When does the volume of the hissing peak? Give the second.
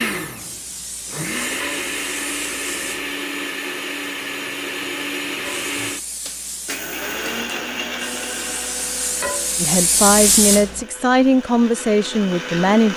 10 s.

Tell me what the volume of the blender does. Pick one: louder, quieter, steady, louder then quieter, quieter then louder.
quieter.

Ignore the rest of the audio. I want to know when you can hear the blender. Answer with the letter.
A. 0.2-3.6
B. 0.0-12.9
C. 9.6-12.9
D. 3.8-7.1
B.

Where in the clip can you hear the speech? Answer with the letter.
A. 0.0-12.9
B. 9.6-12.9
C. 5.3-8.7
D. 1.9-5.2
B.